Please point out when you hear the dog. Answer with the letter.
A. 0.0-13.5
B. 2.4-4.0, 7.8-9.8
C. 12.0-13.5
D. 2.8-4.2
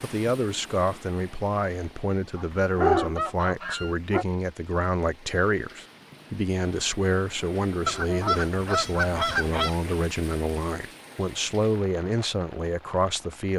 D.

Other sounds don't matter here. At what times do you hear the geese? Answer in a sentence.
You can hear the geese from 2.4 to 4.0 s and from 7.8 to 9.8 s.